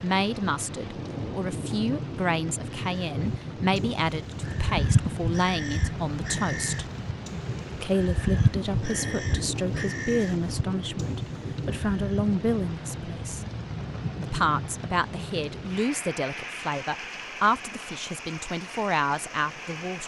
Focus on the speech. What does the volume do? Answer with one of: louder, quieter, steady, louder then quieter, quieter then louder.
steady.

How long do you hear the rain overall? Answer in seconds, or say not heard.
20 s.